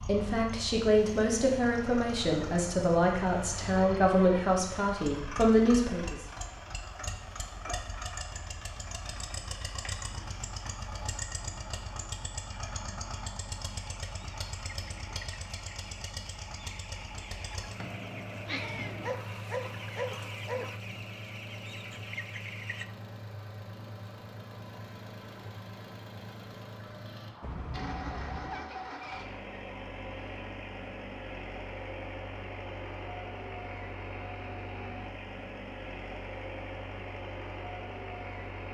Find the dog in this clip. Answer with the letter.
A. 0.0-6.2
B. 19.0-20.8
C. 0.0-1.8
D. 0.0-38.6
B.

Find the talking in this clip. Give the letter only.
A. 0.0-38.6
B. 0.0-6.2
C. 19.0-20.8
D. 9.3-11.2
B.